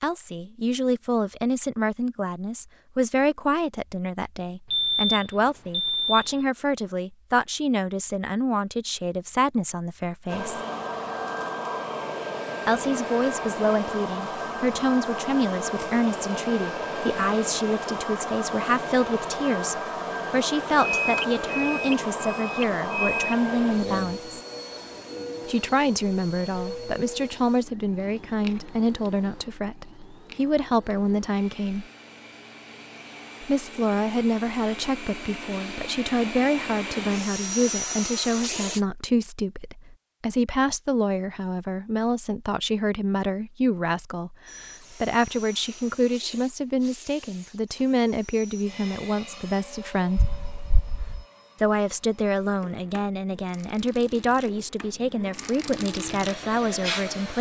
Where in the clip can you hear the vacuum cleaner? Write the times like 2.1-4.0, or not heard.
10.2-38.9, 44.5-57.3.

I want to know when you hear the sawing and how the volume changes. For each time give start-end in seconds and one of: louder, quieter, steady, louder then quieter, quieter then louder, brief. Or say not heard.
not heard.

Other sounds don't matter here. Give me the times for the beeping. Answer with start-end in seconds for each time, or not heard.
4.7-6.4, 20.9-23.4, 50.1-51.2.